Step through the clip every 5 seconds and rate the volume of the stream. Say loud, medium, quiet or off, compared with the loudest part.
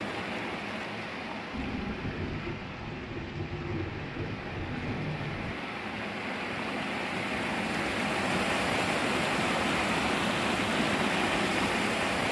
medium, loud, loud.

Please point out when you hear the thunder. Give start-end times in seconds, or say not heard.
1.5-5.5.